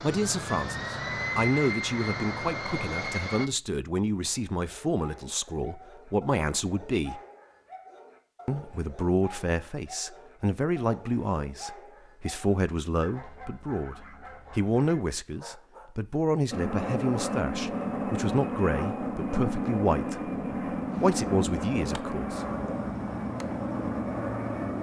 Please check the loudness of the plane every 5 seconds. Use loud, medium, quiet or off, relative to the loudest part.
loud, off, off, loud, loud.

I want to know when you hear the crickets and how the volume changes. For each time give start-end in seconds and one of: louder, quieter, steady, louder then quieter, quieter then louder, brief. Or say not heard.
not heard.